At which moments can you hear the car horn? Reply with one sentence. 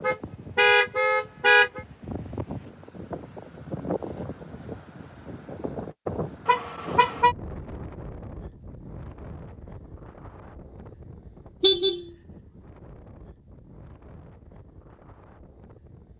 You can hear the car horn from 0.0 to 1.8 s, from 6.5 to 7.3 s and from 11.6 to 12.1 s.